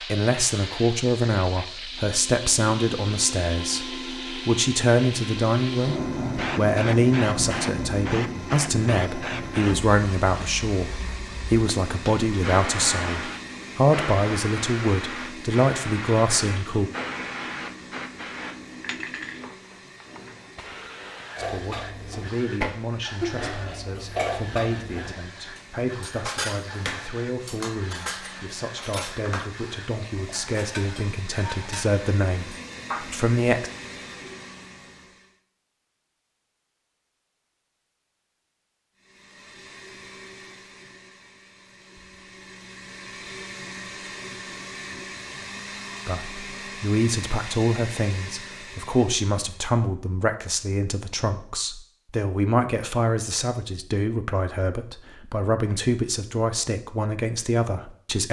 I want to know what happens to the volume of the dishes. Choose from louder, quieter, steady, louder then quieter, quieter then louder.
quieter.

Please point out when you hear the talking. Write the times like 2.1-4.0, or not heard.
0.1-16.9, 21.4-33.7, 46.0-58.2.